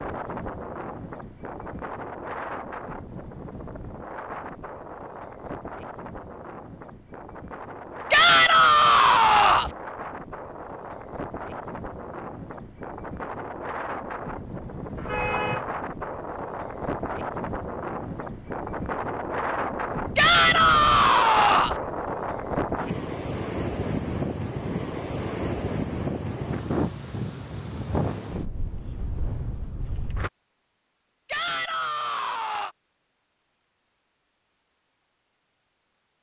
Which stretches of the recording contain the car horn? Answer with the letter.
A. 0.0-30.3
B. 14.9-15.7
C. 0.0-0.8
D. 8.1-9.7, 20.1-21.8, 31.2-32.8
B.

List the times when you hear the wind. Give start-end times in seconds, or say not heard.
0.0-30.3.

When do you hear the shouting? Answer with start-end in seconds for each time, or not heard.
8.1-9.7, 20.1-21.8, 31.2-32.8.